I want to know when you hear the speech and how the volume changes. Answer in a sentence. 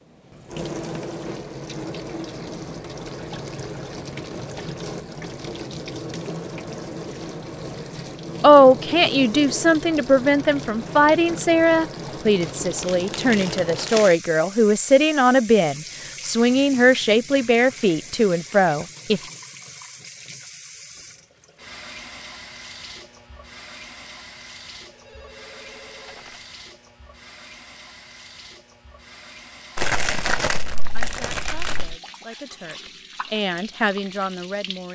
The speech can be heard from 8.4 to 19.2 s, at a steady volume; and from 30.9 to 34.9 s, getting louder.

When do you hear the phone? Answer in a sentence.
You can hear the phone from 24.9 to 26.4 s.